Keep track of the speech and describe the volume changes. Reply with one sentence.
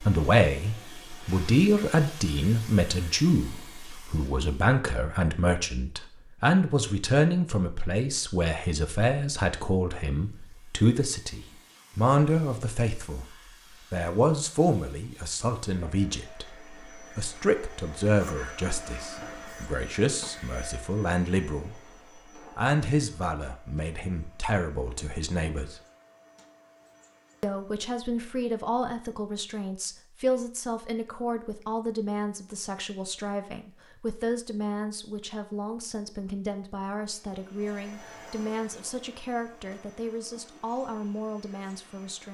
The loudness of the speech goes down.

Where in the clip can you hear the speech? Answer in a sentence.
The speech can be heard from 0.0 to 13.2 s, from 13.9 to 21.8 s, from 22.6 to 25.8 s and from 27.4 to 42.2 s.